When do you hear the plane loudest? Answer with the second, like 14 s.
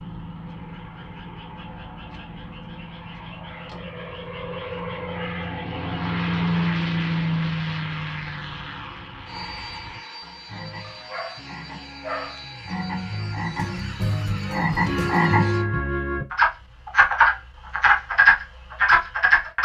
7 s.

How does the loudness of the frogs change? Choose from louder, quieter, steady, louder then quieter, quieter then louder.
louder.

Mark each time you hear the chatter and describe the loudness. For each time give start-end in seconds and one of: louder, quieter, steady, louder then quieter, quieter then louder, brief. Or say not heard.
not heard.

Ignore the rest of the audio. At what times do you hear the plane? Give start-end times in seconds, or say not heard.
0.0-15.7.